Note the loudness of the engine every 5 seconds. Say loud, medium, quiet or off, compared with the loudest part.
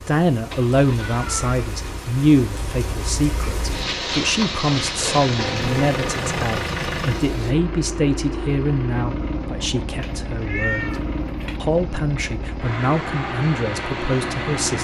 medium, loud, loud.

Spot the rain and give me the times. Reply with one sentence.
The rain can be heard from 0.0 to 7.5 s.